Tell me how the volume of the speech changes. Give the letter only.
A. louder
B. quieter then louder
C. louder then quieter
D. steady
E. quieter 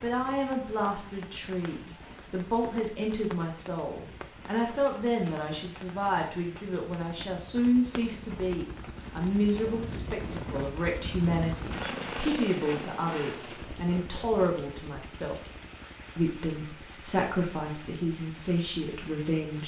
D.